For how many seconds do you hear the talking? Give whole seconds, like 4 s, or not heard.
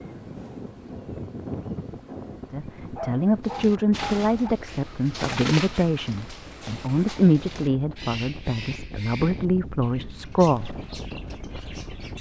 8 s.